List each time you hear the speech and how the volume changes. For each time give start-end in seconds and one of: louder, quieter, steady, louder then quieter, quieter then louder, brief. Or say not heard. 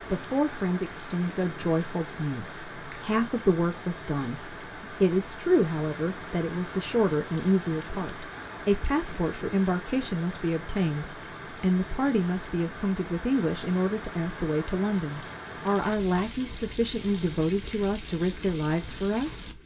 0.1-19.4 steady.